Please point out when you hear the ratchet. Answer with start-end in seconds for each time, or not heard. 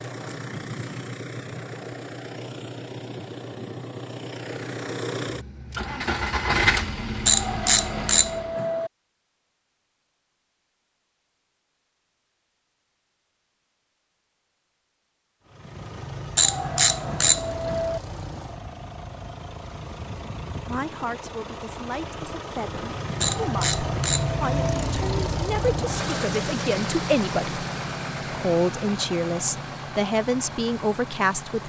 7.2-8.9, 16.4-18.0, 23.2-24.9.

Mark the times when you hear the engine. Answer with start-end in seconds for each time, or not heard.
0.0-8.6, 15.4-31.6.